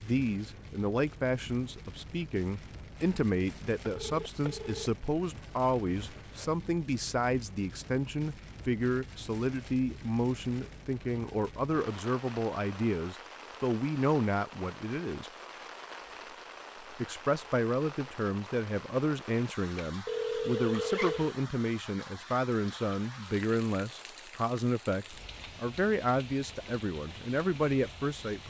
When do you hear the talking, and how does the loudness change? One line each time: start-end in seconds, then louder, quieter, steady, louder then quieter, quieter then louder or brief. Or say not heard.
0.0-15.3 steady
16.8-28.4 steady.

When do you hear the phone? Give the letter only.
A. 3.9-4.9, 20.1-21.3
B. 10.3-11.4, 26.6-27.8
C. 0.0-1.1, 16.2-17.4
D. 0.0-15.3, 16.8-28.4
A.